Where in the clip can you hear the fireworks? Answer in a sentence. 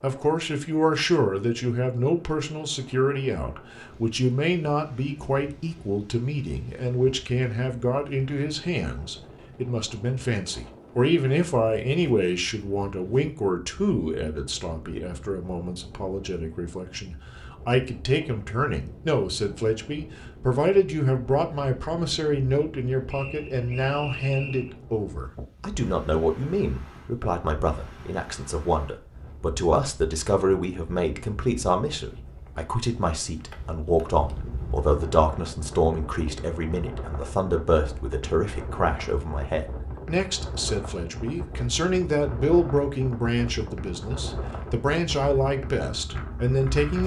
The fireworks can't be heard in this clip.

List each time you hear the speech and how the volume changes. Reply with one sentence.
The speech can be heard from 0.0 to 47.0 s, at a steady volume.